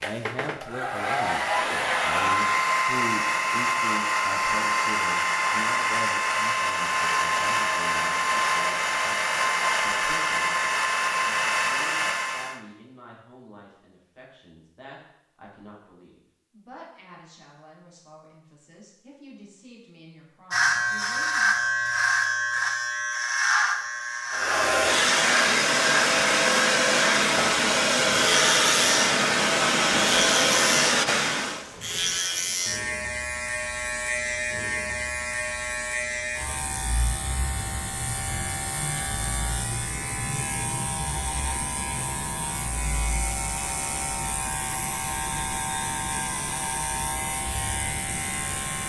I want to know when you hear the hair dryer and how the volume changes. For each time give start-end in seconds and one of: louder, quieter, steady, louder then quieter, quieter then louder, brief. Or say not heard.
0.0-12.6 steady
24.3-31.6 steady.